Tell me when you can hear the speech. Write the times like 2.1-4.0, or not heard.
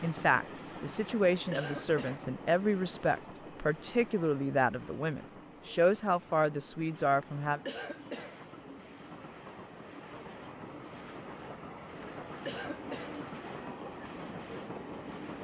0.0-7.6.